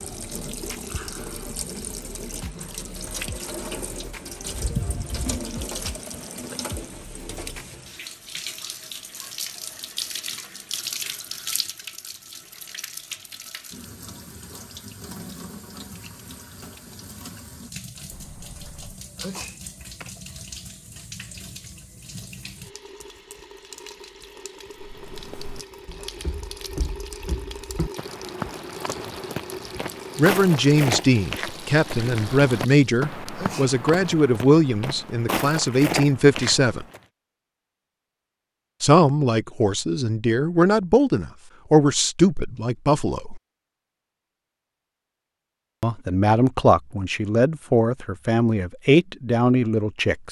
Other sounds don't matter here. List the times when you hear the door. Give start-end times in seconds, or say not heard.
18.1-19.0.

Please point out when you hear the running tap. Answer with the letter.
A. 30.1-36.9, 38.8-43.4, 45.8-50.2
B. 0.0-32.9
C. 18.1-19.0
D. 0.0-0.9
B.